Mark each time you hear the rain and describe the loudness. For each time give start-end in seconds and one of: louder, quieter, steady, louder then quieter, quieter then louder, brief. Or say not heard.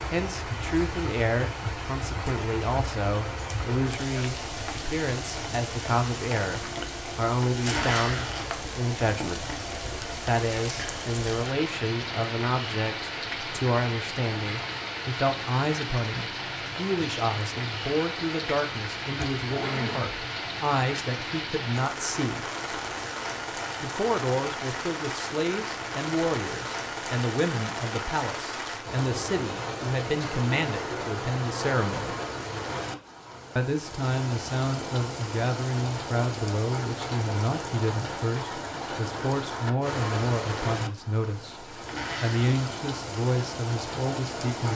0.0-44.7 steady.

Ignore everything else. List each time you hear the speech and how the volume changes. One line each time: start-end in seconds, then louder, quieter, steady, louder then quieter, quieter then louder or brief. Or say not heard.
0.1-22.4 steady
23.8-32.1 steady
33.5-44.7 steady.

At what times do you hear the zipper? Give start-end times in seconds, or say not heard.
7.7-8.7, 19.1-20.1, 41.9-42.5.